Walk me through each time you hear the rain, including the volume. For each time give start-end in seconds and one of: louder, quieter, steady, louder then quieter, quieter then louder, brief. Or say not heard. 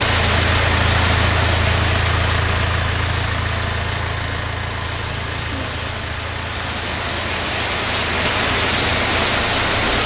0.0-10.0 quieter then louder.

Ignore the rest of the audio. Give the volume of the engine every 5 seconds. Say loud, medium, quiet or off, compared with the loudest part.
loud, medium.